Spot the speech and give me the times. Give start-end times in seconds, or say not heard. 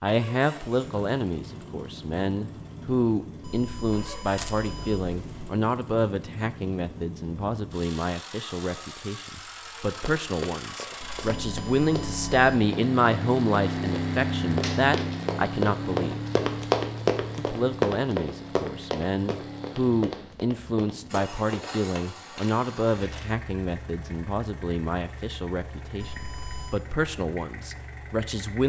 0.0-16.2, 17.4-28.6.